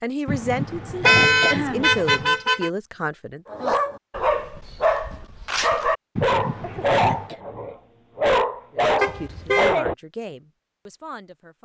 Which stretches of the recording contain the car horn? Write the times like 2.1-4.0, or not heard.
1.0-2.7, 9.0-9.8.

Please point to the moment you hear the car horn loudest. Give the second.
1 s.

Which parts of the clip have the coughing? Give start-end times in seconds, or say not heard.
0.2-2.4, 6.2-7.4.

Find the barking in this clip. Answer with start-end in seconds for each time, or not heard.
3.5-9.9.